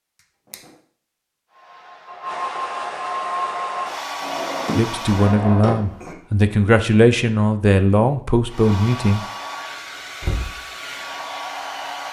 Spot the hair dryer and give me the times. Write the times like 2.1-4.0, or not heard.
1.5-5.4, 8.4-12.0.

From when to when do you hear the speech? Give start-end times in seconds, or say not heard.
4.8-9.2.